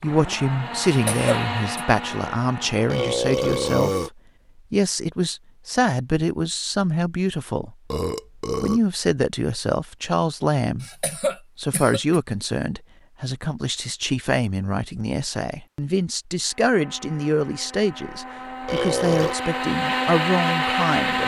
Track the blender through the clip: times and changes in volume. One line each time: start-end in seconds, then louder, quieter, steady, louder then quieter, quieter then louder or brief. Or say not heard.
0.0-3.0 brief
16.4-21.2 louder.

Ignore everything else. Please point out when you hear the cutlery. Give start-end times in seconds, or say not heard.
not heard.